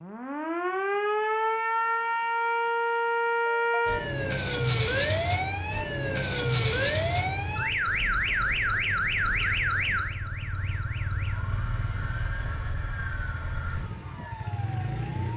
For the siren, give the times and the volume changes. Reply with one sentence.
The siren can be heard from 0.0 to 15.3 s, getting quieter.